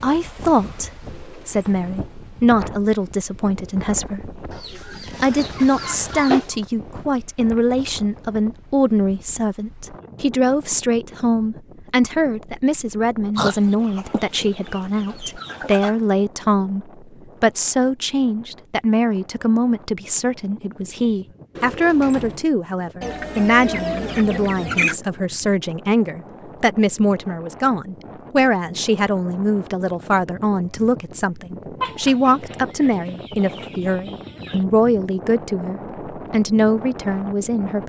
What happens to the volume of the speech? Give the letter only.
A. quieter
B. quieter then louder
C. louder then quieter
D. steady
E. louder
D.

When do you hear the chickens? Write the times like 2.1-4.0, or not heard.
4.5-6.5, 13.3-15.9, 23.0-25.0, 31.8-34.6.